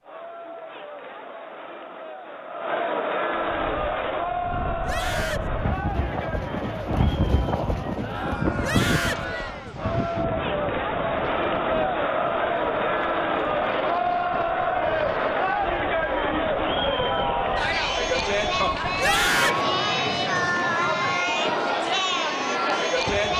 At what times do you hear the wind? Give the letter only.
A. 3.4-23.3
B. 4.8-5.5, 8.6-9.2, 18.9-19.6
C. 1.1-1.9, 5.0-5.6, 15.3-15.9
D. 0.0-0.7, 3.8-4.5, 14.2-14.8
A.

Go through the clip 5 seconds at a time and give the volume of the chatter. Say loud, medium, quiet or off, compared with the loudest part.
medium, medium, loud, loud, loud.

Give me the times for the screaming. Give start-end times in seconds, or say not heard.
4.8-5.5, 8.6-9.2, 18.9-19.6.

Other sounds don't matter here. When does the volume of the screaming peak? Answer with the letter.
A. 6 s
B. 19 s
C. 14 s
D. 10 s
B.